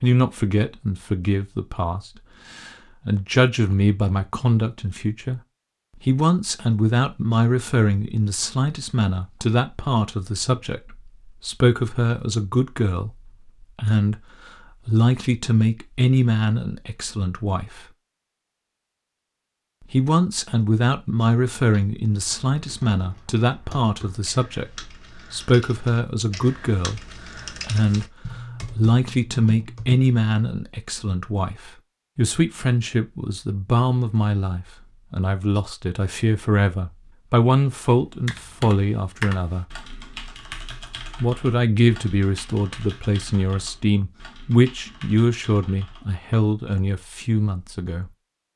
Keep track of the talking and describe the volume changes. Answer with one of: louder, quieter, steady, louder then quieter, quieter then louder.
steady.